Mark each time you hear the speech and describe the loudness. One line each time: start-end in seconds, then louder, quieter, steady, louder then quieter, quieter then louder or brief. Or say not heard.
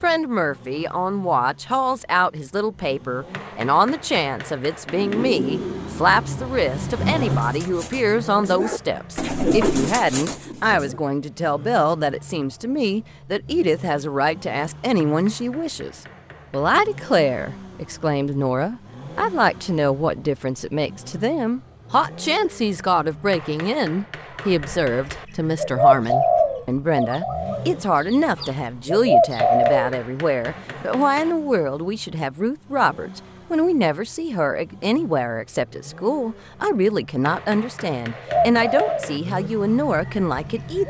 0.0-40.8 steady.